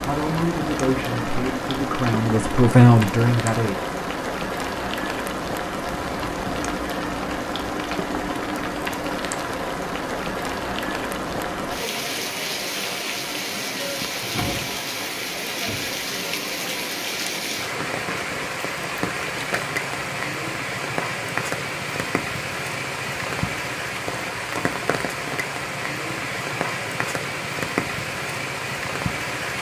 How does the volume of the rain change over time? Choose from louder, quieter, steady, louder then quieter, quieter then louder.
steady.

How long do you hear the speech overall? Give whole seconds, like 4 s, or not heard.
4 s.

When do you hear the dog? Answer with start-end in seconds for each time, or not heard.
not heard.